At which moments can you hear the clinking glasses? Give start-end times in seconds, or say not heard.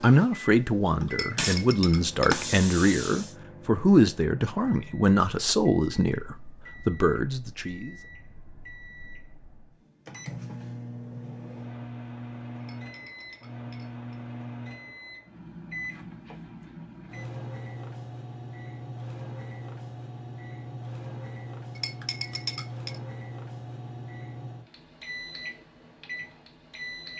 1.1-2.4, 12.6-14.2, 21.8-23.0.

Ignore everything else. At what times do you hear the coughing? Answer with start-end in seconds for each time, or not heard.
not heard.